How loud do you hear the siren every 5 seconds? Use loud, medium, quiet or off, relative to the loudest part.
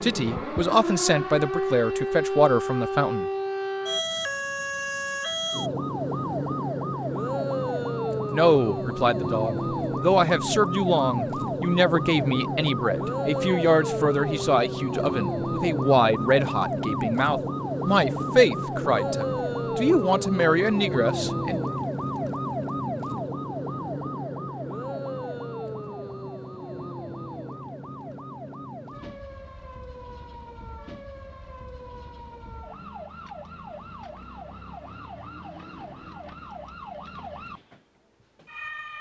loud, loud, loud, loud, loud, medium, quiet, quiet.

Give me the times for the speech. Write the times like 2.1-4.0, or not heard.
0.0-3.2, 8.3-21.6.